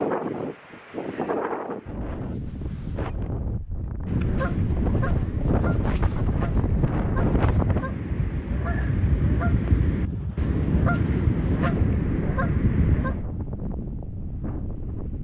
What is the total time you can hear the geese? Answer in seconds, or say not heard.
9 s.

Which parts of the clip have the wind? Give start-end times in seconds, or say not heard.
0.0-15.1.